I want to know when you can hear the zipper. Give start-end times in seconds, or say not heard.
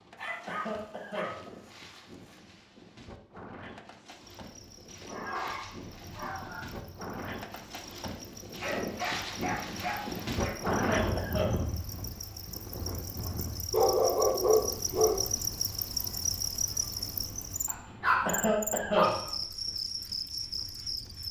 not heard.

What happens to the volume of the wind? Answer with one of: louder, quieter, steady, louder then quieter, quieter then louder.
louder then quieter.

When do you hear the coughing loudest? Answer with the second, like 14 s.
19 s.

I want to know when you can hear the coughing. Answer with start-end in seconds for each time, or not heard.
0.5-1.4, 10.7-11.6, 18.2-19.1.